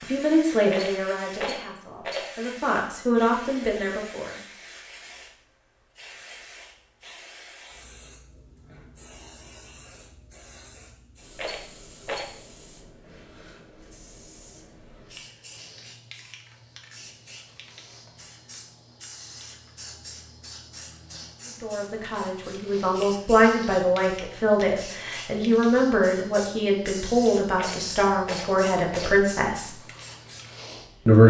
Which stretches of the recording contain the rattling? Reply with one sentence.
The rattling can be heard from 0.7 to 2.3 s, from 11.3 to 12.3 s and from 27.6 to 29.2 s.